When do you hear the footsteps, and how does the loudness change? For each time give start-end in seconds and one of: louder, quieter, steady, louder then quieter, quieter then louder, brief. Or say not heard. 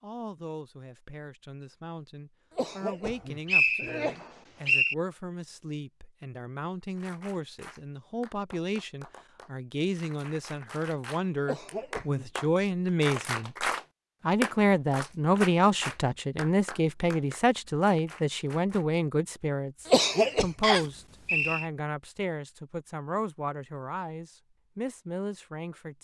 not heard.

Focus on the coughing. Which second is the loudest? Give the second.
20 s.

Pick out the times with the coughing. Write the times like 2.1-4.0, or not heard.
2.5-4.2, 11.4-12.8, 19.9-20.5.